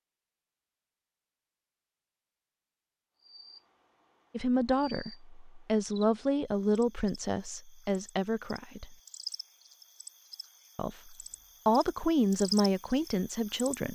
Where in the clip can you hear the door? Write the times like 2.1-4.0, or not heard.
not heard.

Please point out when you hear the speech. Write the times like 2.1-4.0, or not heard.
4.3-8.9, 10.8-13.9.